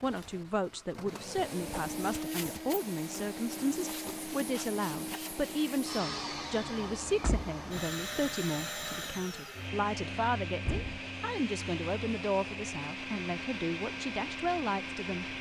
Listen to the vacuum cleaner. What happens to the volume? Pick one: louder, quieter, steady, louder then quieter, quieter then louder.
steady.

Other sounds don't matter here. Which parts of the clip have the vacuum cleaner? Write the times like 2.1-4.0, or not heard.
0.0-15.3.